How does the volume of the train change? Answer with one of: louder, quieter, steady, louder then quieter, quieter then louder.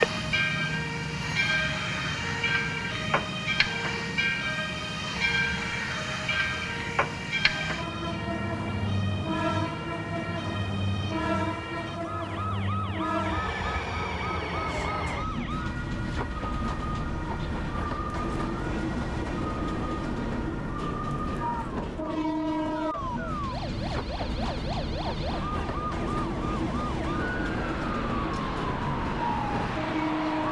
steady.